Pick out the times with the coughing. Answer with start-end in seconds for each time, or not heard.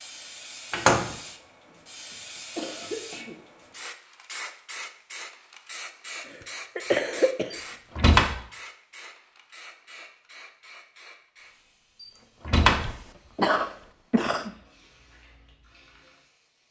2.1-3.4, 6.2-7.6, 12.7-14.6.